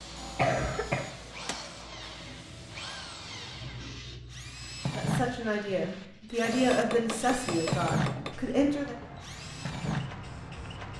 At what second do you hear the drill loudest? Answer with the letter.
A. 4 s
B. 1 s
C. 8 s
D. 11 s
C.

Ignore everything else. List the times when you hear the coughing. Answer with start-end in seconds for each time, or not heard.
0.3-1.1, 6.4-8.2.